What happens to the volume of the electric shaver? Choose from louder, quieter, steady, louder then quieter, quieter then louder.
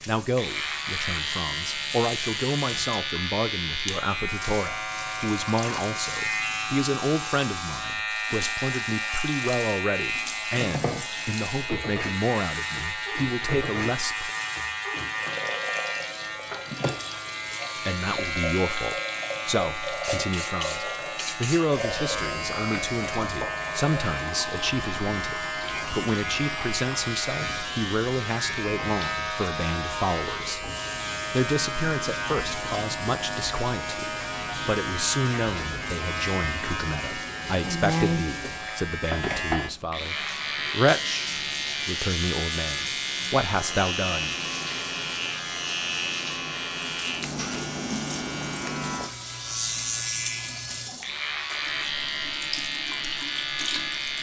steady.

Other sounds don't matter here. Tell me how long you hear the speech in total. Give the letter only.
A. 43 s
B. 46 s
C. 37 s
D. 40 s
D.